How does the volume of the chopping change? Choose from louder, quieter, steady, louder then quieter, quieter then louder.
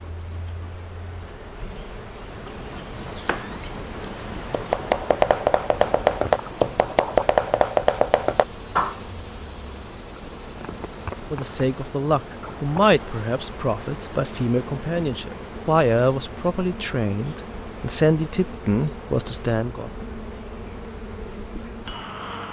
louder.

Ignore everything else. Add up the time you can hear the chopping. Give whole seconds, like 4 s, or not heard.
7 s.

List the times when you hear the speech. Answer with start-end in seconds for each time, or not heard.
11.3-19.9.